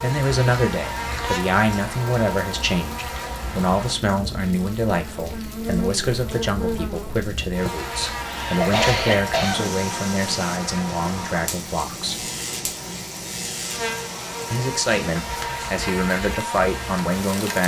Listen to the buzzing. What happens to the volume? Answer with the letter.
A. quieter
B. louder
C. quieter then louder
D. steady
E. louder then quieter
D.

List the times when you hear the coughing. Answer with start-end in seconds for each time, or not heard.
7.7-9.8.